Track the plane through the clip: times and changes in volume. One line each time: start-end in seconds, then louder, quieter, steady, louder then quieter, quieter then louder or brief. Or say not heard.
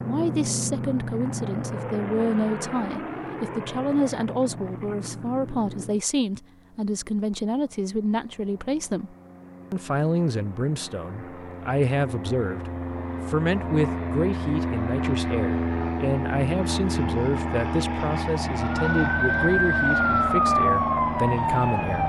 0.0-22.0 quieter then louder.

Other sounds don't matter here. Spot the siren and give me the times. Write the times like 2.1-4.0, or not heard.
18.6-22.0.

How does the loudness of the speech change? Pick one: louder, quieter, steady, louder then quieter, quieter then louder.
steady.